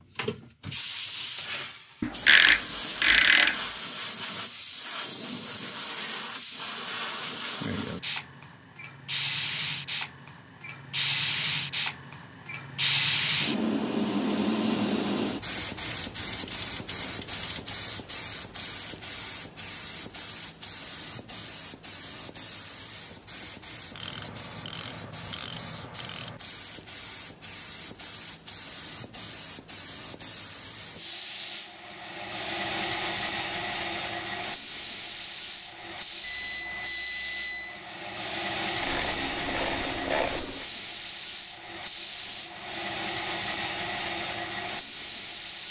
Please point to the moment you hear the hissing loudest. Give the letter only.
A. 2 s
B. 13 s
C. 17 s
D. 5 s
B.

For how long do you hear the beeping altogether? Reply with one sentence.
You can hear the beeping for 2 seconds altogether.